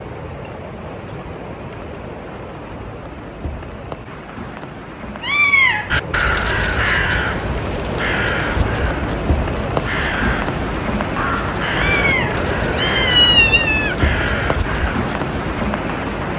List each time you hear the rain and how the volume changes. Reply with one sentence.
The rain can be heard from 0.0 to 16.3 s, getting louder.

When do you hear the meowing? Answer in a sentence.
The meowing can be heard from 5.2 to 6.1 s and from 11.8 to 14.0 s.